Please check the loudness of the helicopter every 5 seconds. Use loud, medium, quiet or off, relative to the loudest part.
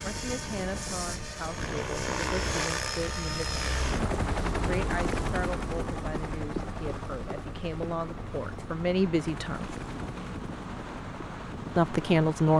loud, medium, quiet.